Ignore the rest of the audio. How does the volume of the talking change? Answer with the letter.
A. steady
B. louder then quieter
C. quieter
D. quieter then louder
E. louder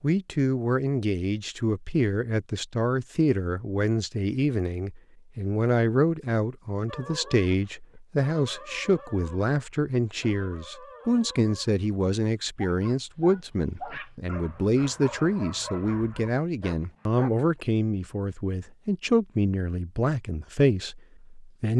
A.